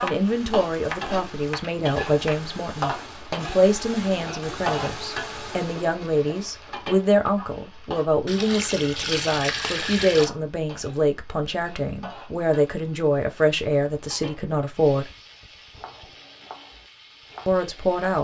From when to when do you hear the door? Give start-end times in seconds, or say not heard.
not heard.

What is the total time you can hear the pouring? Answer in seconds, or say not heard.
2 s.